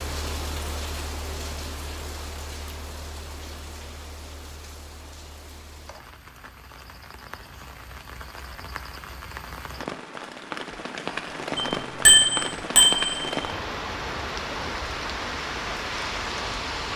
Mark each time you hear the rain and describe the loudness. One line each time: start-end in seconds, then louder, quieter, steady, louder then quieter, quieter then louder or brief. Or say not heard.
0.0-16.9 quieter then louder.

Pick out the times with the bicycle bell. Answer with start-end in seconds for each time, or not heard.
11.6-13.3.